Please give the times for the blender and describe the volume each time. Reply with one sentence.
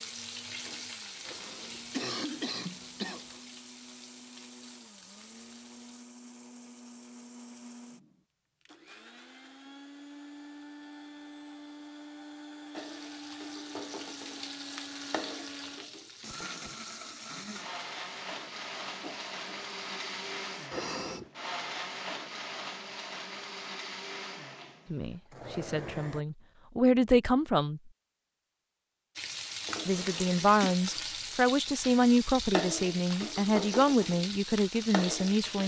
You can hear the blender from 0.0 to 26.2 s, getting louder.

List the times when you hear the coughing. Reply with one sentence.
You can hear the coughing from 1.2 to 3.4 s, from 20.7 to 21.3 s and from 29.9 to 30.8 s.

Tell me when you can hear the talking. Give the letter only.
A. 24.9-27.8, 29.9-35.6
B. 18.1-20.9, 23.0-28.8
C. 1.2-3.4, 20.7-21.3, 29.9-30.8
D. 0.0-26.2
A.